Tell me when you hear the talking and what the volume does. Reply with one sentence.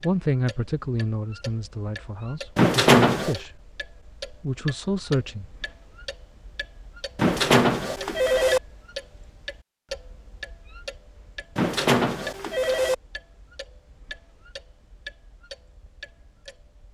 You can hear the talking from 0.0 to 5.6 s, getting quieter then louder.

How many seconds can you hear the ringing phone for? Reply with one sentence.
You can hear the ringing phone for 4 seconds altogether.